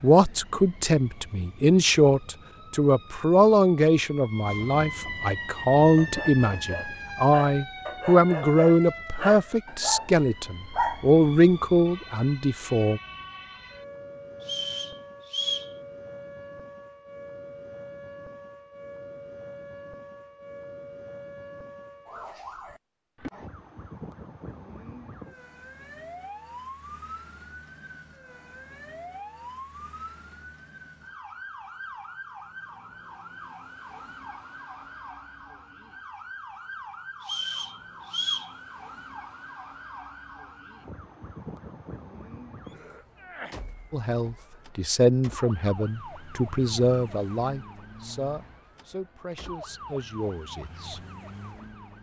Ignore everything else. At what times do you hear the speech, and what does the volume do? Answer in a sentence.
The speech can be heard from 0.0 to 13.0 s, at a steady volume; and from 43.9 to 51.0 s, getting quieter.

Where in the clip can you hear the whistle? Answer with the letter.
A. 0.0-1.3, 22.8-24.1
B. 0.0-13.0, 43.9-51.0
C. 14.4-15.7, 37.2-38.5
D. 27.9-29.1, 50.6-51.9
C.